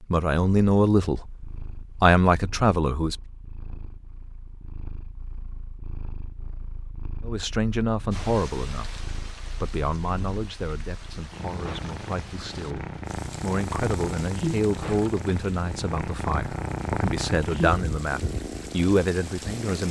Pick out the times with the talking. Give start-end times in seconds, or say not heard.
0.0-3.1, 7.2-19.8.